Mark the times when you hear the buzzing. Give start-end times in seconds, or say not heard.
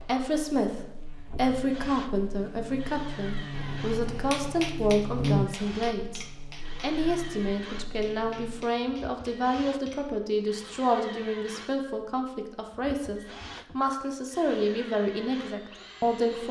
0.0-8.7.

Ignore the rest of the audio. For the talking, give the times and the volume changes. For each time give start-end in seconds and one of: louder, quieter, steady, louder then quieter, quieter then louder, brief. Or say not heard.
0.0-16.4 steady.